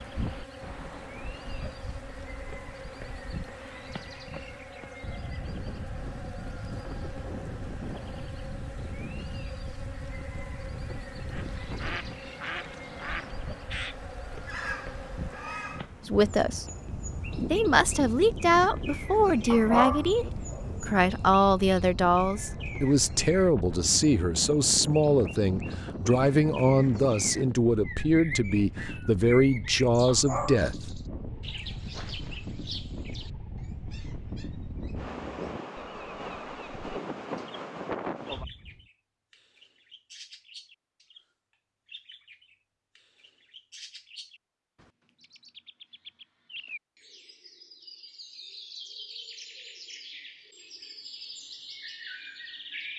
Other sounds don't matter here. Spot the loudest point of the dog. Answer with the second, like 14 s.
20 s.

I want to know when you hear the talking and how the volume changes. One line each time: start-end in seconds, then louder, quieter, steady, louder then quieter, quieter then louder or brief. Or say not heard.
16.1-16.6 brief
17.5-30.9 steady.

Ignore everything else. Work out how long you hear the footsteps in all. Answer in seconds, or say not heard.
not heard.